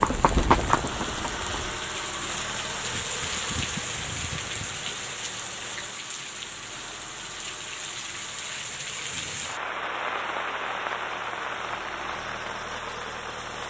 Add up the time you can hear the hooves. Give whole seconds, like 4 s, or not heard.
2 s.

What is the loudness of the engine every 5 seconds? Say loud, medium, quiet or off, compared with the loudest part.
loud, medium, loud.